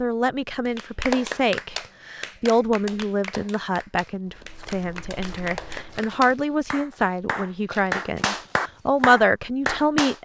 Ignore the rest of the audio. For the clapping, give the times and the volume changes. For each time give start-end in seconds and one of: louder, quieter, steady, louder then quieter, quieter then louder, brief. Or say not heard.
0.8-10.2 quieter then louder.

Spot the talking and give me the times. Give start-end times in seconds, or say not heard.
0.0-10.2.